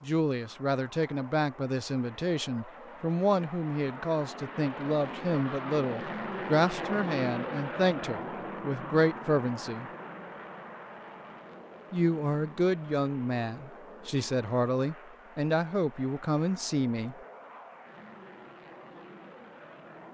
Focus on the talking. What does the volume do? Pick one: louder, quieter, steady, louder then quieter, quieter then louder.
steady.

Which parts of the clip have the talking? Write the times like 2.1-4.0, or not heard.
0.0-9.8, 11.9-17.1.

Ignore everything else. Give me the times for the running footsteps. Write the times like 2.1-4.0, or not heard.
not heard.